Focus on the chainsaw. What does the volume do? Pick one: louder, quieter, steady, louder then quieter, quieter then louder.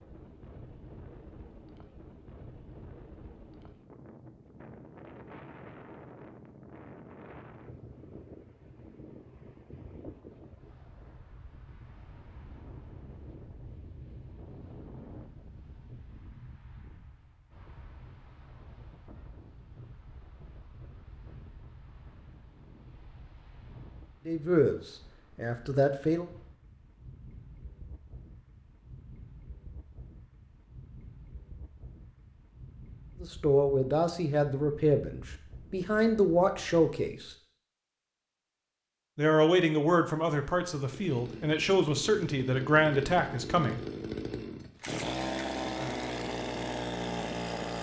louder.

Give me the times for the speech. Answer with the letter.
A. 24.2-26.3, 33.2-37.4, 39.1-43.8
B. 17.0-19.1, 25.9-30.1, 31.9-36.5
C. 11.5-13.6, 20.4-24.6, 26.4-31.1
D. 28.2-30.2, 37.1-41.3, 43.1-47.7
A.